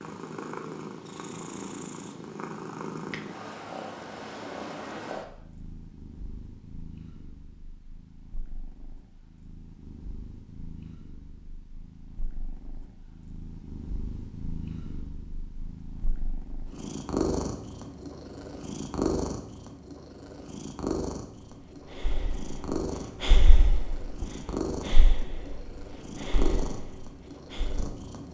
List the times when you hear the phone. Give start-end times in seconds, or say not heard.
not heard.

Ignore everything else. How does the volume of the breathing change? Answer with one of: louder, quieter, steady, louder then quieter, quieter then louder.
quieter.